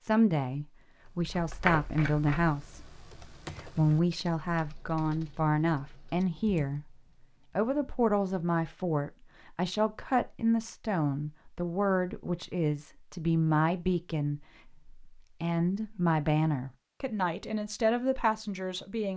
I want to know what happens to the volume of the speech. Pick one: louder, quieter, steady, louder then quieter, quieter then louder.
steady.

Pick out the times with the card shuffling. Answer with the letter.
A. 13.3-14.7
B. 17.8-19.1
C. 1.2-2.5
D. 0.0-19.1
C.